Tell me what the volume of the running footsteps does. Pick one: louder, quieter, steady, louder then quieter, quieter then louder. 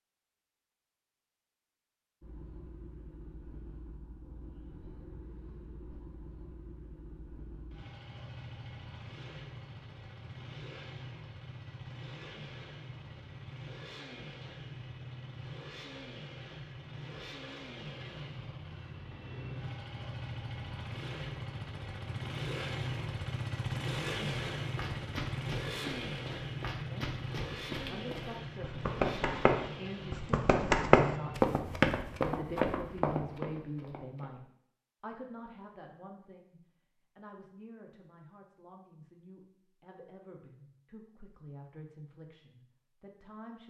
louder then quieter.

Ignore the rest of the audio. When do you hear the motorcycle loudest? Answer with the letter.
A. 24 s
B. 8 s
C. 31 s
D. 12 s
A.